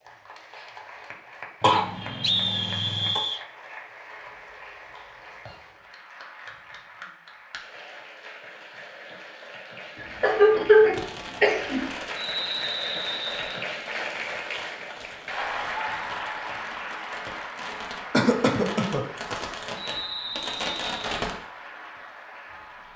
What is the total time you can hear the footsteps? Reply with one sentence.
You can't hear the footsteps here.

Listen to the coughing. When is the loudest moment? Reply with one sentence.
The loudest moment of the coughing is at 11 seconds.